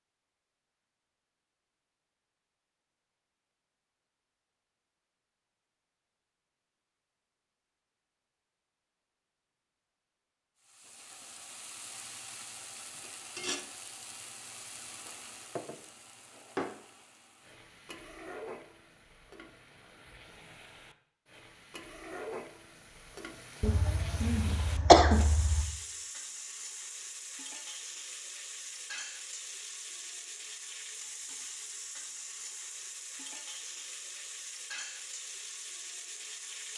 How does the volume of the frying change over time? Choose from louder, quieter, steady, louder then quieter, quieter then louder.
steady.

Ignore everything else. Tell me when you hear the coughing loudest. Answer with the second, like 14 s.
25 s.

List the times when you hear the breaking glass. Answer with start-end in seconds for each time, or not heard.
not heard.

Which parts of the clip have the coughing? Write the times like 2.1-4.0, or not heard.
23.6-25.6.